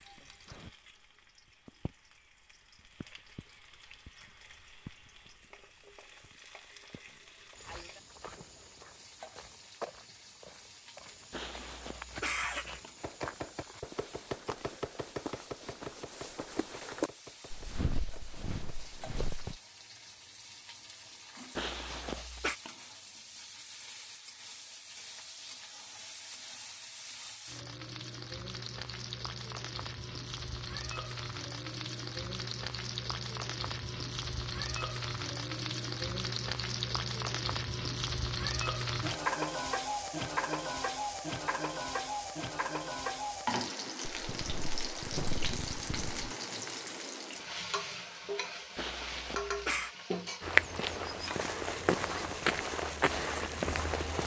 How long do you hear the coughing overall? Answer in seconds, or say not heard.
4 s.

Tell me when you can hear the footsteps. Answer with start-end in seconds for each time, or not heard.
7.5-19.6, 44.0-46.3, 50.4-54.2.